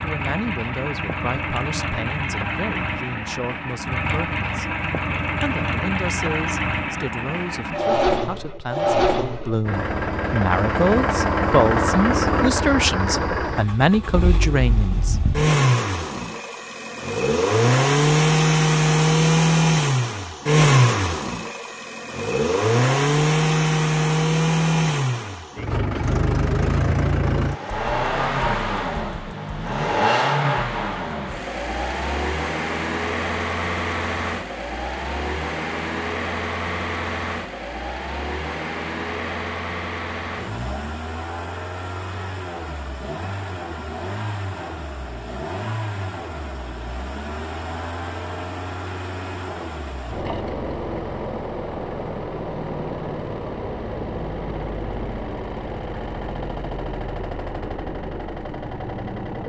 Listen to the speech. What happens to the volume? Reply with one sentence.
The loudness of the speech goes up.